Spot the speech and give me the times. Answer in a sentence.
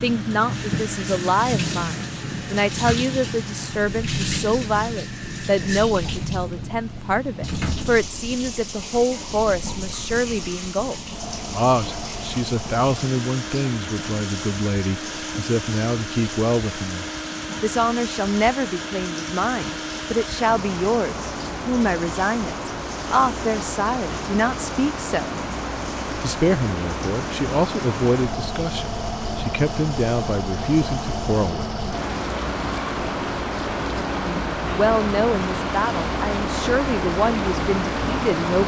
The speech can be heard from 0.0 to 25.4 s, from 26.2 to 31.8 s and from 34.2 to 38.6 s.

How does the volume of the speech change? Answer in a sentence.
The volume of the speech stays about the same.